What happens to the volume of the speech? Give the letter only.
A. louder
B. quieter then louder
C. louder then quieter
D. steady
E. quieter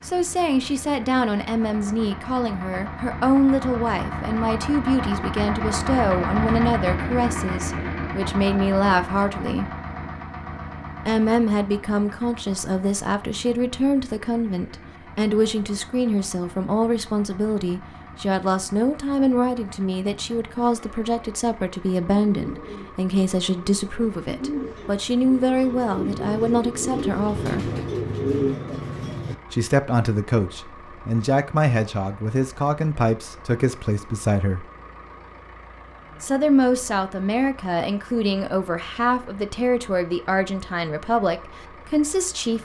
D.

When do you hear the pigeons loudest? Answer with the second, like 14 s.
28 s.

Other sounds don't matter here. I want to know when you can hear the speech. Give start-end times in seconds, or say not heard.
0.0-9.7, 11.1-27.7, 29.5-34.6, 36.2-42.6.